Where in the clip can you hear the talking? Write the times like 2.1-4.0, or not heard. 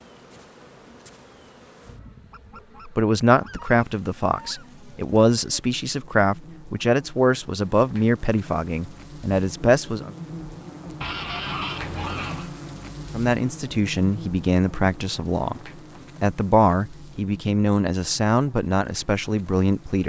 2.9-10.1, 13.1-15.6, 16.2-20.0.